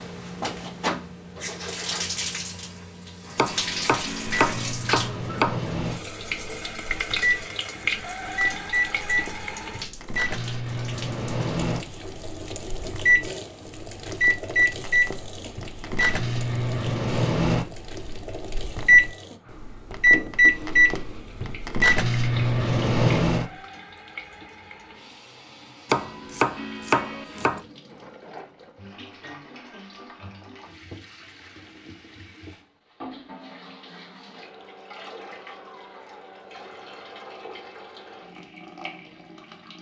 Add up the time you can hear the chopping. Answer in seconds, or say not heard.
4 s.